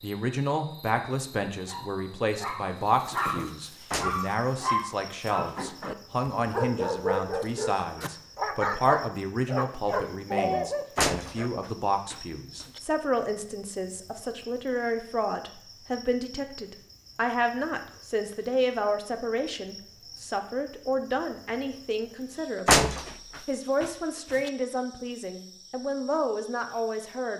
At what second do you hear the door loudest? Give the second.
23 s.